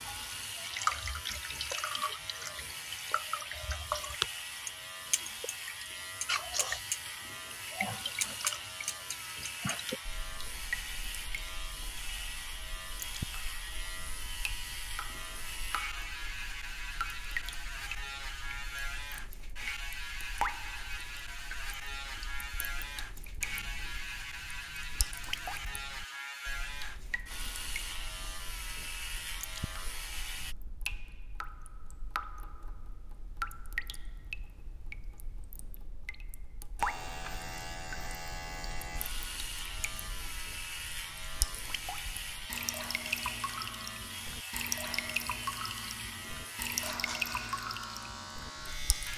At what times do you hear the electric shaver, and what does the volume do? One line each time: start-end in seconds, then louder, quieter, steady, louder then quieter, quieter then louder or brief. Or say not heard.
0.0-30.6 steady
36.8-49.1 steady.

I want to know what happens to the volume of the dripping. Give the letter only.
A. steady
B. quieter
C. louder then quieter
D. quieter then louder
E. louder
D.